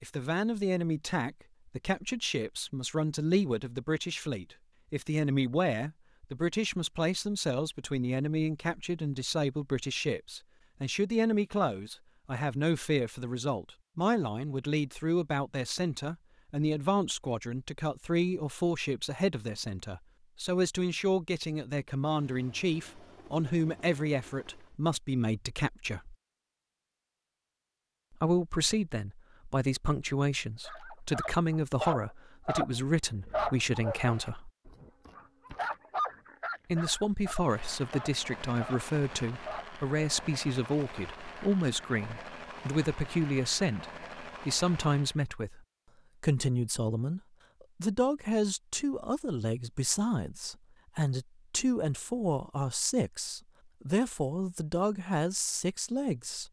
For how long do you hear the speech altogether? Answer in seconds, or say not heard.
52 s.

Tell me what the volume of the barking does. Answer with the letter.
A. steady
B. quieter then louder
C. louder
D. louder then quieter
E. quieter
E.